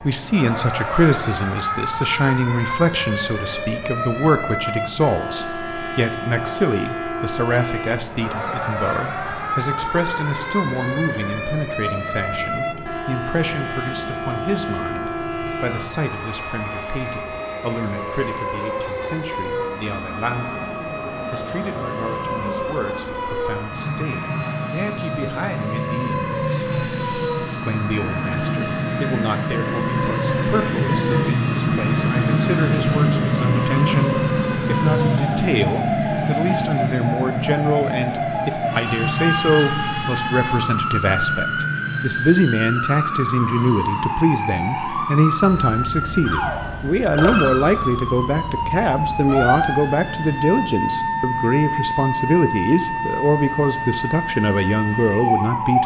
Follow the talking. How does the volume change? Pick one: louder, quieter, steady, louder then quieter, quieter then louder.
quieter then louder.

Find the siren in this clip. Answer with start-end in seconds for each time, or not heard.
0.0-55.8.